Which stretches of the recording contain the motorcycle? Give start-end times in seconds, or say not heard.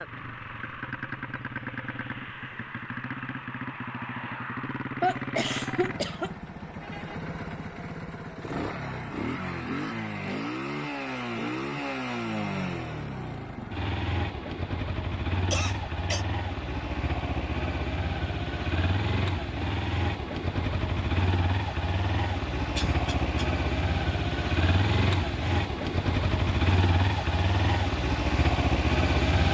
0.0-29.4.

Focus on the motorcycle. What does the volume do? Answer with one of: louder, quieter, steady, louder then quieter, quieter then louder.
louder.